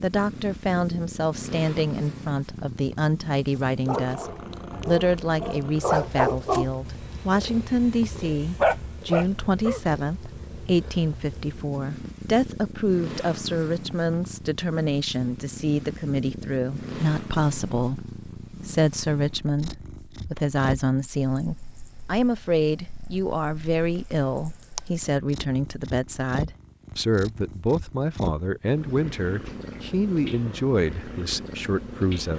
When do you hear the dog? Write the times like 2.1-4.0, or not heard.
3.9-9.8.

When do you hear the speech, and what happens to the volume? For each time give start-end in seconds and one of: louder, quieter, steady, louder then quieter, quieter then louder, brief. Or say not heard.
0.0-32.3 steady.